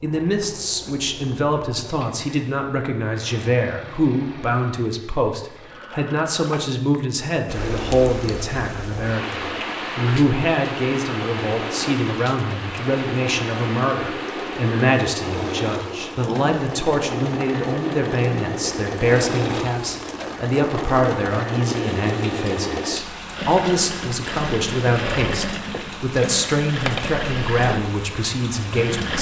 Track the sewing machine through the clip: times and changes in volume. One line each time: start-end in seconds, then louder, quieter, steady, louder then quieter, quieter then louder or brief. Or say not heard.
0.0-29.1 louder.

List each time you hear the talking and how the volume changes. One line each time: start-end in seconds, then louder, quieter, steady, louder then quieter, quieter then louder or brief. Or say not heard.
0.0-29.1 steady.